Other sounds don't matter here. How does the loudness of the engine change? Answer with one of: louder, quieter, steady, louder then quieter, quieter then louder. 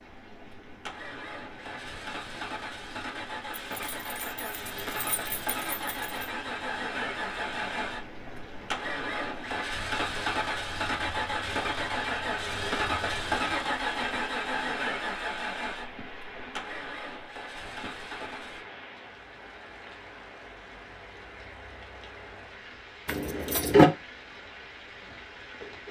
louder then quieter.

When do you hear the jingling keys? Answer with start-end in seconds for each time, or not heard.
3.5-6.2, 23.1-23.9.